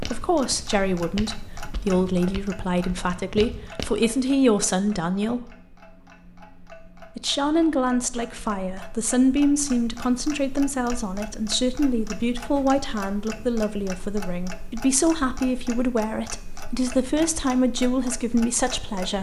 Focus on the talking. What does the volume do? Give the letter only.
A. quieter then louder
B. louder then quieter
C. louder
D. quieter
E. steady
E.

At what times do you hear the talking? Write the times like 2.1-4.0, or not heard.
0.0-5.5, 7.2-19.1.